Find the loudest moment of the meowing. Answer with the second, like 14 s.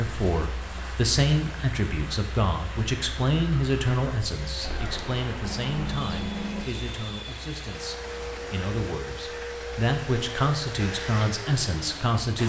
6 s.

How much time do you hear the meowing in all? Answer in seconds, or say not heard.
2 s.